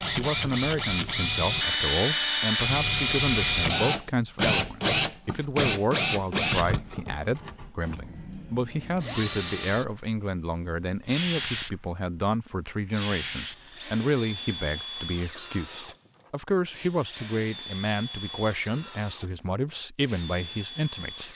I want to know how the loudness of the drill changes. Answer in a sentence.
The volume of the drill goes down.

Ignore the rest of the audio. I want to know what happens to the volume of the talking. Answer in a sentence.
The volume of the talking stays about the same.